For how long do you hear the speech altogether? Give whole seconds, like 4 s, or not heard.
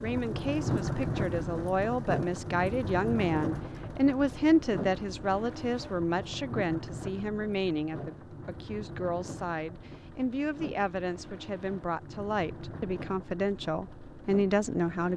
15 s.